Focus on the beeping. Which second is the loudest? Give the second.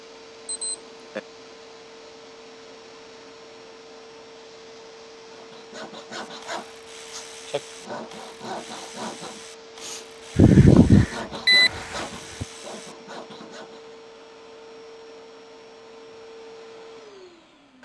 11 s.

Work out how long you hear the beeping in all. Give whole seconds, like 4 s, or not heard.
3 s.